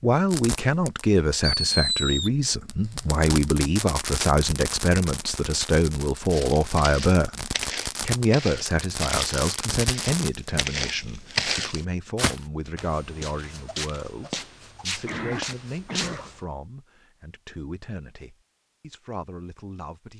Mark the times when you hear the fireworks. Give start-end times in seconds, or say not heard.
0.3-10.7.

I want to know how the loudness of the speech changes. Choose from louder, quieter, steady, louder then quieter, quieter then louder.
quieter.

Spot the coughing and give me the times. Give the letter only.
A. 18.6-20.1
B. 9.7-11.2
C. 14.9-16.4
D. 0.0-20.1
C.